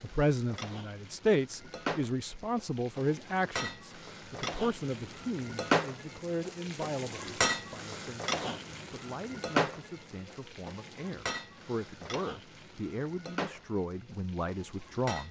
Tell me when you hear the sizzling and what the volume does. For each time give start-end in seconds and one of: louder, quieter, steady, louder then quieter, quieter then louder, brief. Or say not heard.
0.0-15.2 louder then quieter.